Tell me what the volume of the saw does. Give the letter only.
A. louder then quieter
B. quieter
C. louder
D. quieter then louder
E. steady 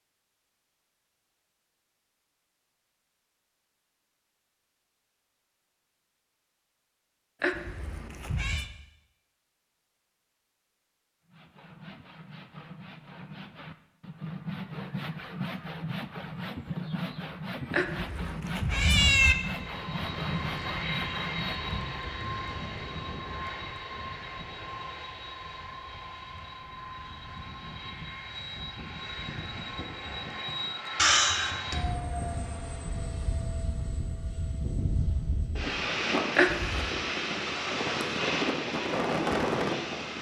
C.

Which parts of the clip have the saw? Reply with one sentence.
The saw can be heard from 11.2 to 21.9 s.